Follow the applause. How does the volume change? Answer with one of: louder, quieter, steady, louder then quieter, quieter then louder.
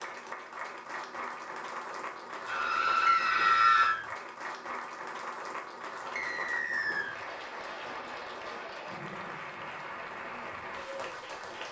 steady.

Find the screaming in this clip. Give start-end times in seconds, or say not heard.
2.5-4.0.